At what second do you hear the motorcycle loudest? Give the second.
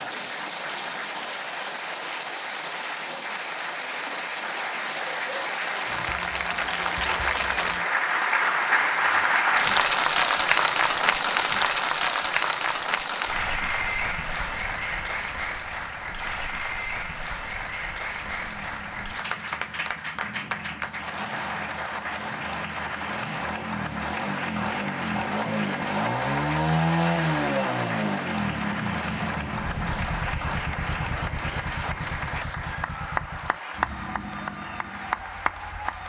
27 s.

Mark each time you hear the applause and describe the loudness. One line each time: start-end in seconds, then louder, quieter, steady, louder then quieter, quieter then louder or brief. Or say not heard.
0.0-36.0 louder then quieter.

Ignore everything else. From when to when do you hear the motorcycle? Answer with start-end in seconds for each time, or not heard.
18.2-36.0.